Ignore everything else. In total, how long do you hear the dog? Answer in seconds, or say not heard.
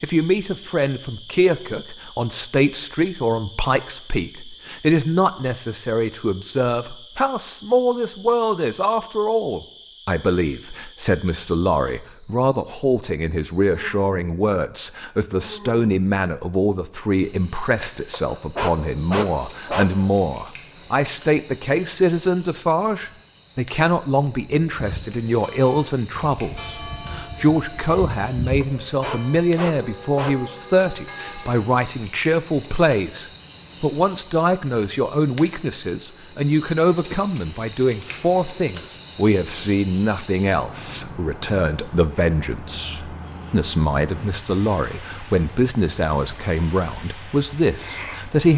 4 s.